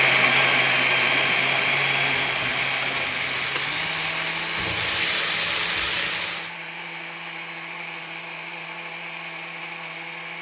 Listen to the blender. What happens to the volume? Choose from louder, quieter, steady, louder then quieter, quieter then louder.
quieter.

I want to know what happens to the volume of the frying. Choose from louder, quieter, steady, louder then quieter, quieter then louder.
louder.